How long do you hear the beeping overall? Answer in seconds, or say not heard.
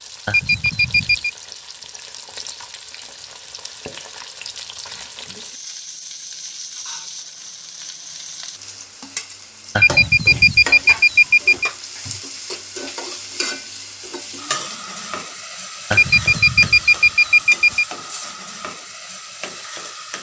5 s.